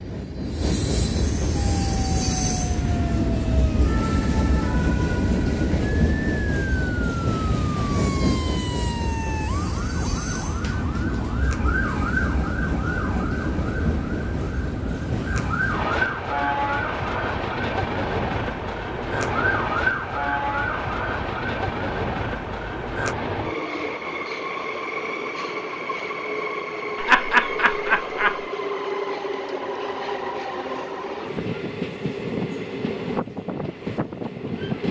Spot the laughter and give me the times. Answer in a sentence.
The laughter can be heard from 26.9 to 28.4 s.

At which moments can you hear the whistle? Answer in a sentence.
The whistle can't be heard in this clip.